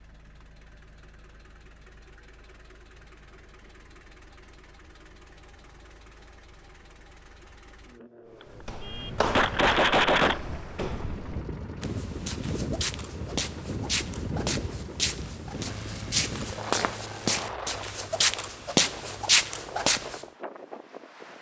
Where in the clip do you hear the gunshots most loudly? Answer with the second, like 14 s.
10 s.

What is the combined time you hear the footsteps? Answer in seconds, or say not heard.
12 s.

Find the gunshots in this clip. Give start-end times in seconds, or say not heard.
8.8-10.4.